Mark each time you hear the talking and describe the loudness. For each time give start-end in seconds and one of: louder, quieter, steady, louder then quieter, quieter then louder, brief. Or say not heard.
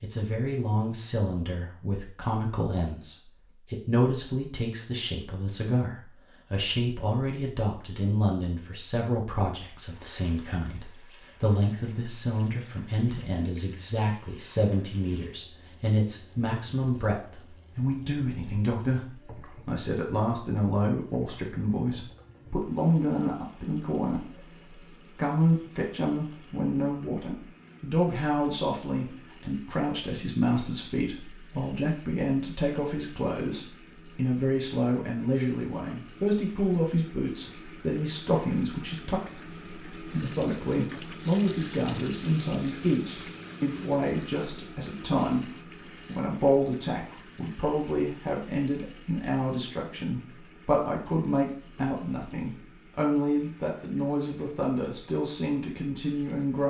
0.0-56.6 steady.